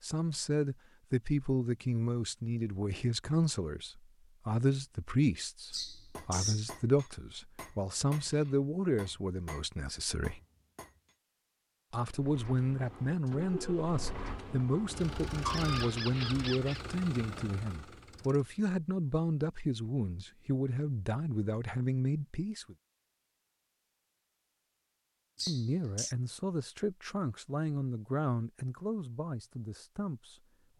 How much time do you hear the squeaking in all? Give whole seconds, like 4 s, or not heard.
3 s.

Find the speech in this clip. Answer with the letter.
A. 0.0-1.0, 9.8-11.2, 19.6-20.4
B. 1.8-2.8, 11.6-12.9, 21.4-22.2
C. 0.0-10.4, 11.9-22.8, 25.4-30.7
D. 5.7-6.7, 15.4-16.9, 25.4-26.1
C.